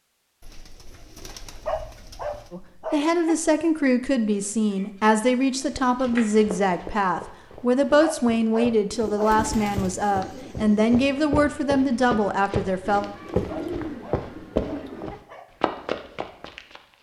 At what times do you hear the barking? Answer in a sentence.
You can hear the barking from 1.6 to 3.5 s, from 8.0 to 9.4 s and from 13.4 to 15.4 s.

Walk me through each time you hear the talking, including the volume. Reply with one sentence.
The talking can be heard from 2.5 to 13.1 s, at a steady volume.